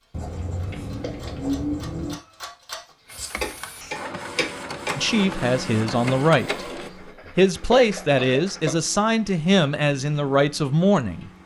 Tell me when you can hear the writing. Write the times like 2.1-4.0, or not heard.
0.1-2.1, 6.8-8.7.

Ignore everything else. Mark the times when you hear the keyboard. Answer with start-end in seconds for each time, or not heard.
not heard.